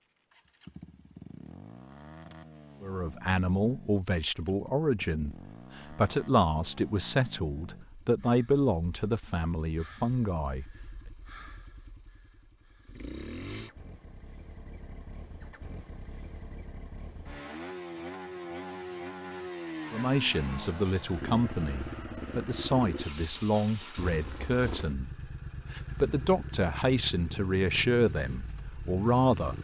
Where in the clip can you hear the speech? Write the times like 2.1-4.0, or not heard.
2.8-10.8, 19.9-29.5.